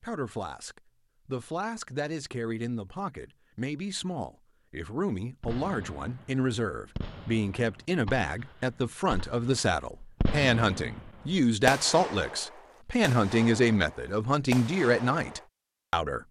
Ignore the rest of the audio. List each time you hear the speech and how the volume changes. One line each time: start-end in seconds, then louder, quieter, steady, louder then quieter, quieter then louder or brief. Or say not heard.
0.0-16.2 louder.